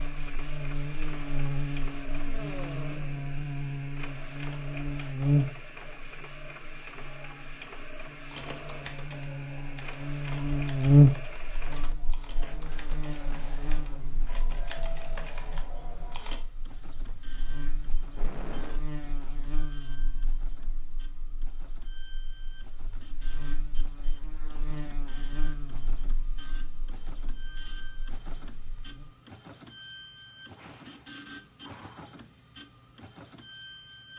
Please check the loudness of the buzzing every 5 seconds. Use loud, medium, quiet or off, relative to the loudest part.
medium, medium, loud, quiet, quiet, quiet, off.